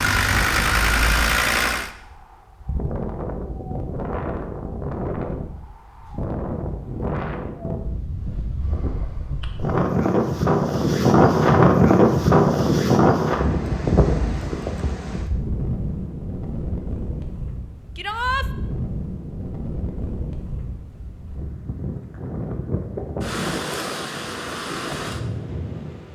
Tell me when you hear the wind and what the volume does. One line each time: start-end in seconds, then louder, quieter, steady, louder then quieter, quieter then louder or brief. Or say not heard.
0.1-26.1 louder then quieter.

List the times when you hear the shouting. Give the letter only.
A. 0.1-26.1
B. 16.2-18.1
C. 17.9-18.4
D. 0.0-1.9
C.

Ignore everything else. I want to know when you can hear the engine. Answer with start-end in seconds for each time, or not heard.
0.0-1.9.